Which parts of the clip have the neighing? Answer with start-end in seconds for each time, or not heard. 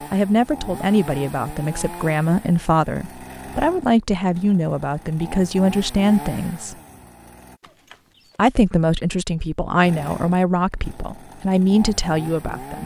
7.6-8.4.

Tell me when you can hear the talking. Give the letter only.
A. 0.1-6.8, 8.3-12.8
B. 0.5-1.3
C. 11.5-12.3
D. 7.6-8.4
A.